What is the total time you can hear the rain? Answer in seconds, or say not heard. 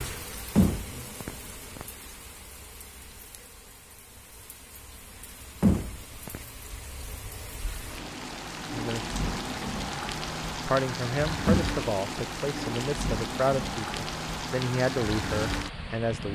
16 s.